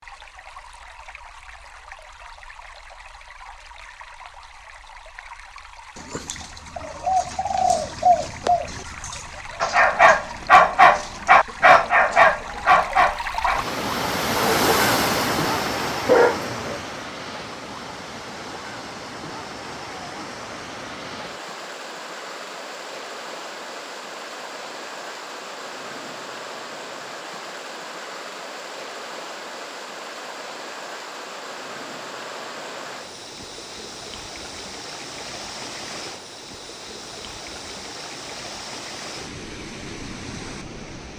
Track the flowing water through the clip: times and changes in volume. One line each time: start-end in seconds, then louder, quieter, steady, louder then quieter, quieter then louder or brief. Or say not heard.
0.0-41.1 louder then quieter.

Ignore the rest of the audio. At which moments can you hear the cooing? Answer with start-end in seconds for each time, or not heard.
6.0-12.8.